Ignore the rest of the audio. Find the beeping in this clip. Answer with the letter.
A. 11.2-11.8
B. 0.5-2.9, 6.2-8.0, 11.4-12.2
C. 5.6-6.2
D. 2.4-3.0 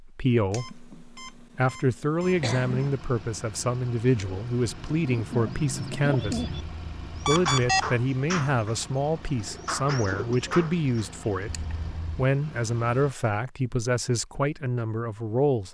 B.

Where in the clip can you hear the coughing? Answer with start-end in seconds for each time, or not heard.
2.4-3.0.